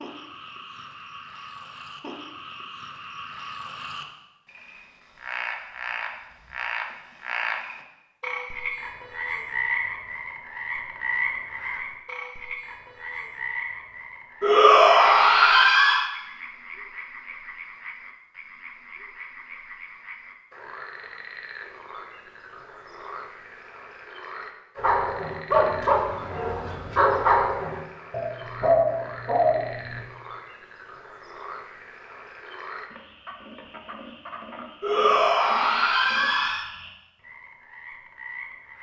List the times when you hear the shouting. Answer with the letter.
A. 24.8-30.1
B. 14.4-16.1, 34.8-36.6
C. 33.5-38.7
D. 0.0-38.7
B.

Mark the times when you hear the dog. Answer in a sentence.
The dog can be heard from 24.8 to 30.1 s.